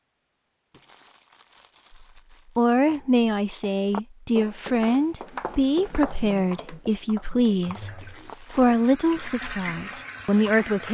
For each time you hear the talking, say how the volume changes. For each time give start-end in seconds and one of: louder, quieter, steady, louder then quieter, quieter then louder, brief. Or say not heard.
2.5-10.8 steady.